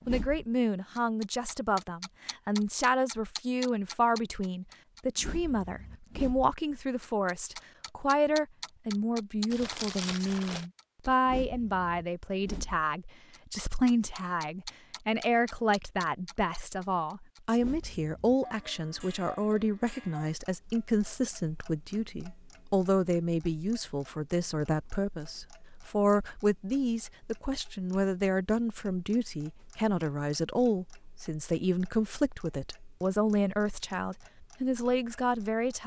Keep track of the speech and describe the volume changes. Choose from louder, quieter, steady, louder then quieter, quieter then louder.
steady.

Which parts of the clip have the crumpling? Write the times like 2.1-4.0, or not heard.
9.5-10.7.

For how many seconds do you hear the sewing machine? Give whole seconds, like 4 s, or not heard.
not heard.